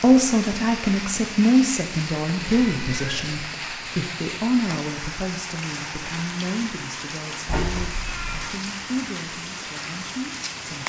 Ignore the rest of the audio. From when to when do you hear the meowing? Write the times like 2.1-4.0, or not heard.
2.4-3.5, 7.5-8.5.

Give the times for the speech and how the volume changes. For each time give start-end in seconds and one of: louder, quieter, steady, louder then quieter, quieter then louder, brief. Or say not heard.
0.0-10.8 quieter.